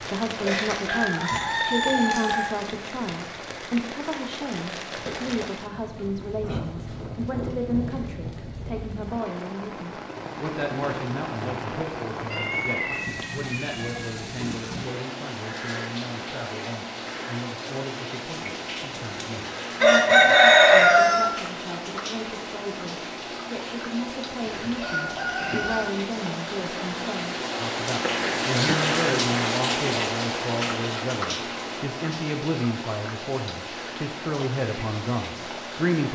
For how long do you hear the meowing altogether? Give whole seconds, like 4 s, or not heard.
2 s.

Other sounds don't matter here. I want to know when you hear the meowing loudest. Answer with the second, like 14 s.
13 s.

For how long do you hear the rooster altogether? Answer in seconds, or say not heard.
6 s.